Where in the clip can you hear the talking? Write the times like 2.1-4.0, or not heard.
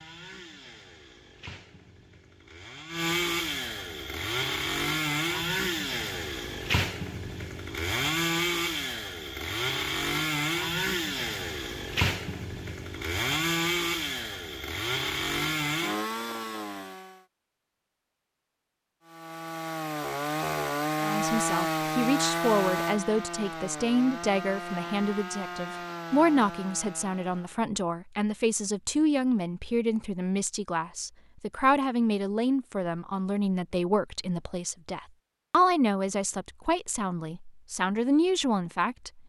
21.0-39.2.